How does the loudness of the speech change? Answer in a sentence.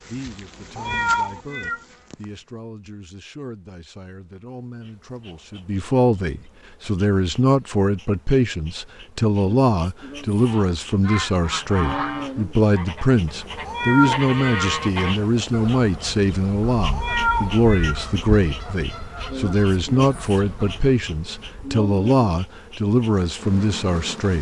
The loudness of the speech goes up.